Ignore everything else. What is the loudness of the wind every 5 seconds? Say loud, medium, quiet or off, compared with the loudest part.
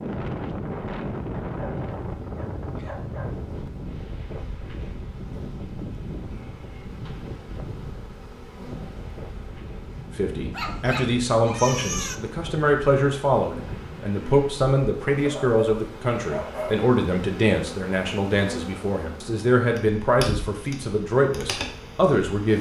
loud, medium, medium, off, off.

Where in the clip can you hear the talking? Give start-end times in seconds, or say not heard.
10.2-22.5.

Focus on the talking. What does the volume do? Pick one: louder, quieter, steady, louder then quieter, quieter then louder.
steady.